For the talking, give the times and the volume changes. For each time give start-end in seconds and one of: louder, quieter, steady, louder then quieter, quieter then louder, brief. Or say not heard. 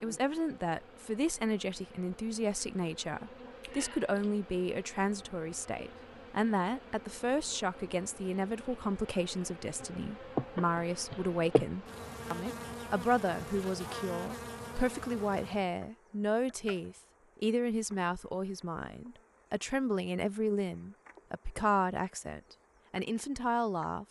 0.0-24.0 steady.